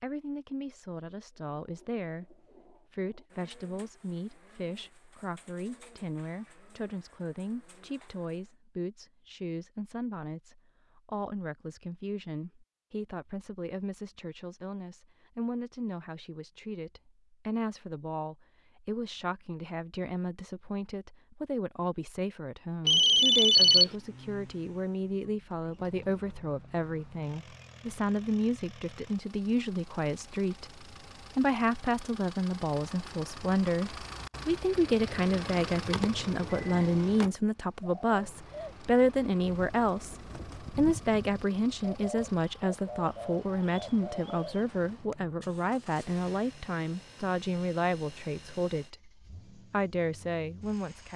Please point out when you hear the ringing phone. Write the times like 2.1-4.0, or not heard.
22.9-23.9, 35.9-36.9.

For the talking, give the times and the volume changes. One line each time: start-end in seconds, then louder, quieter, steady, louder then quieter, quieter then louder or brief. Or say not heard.
0.0-51.1 louder.